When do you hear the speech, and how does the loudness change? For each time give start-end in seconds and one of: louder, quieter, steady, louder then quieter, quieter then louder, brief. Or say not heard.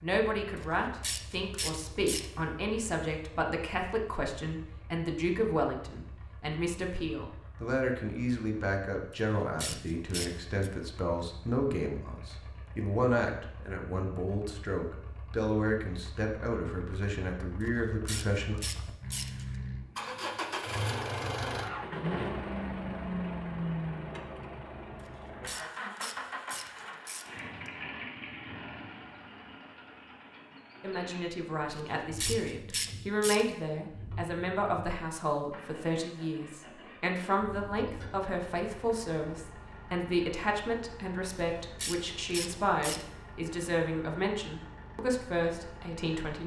0.0-18.6 steady
30.8-46.4 steady.